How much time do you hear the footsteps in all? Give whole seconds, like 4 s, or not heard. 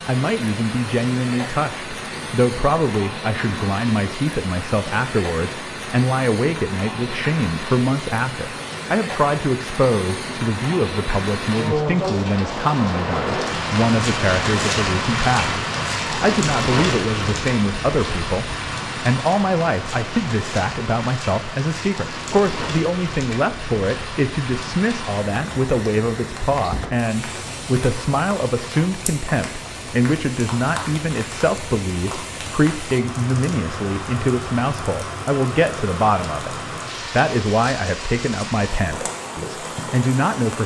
not heard.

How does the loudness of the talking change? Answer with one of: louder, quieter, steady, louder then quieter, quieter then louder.
steady.